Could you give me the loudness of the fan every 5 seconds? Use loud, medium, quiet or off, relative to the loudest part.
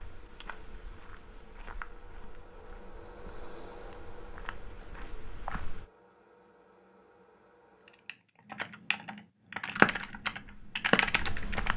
loud, medium, off.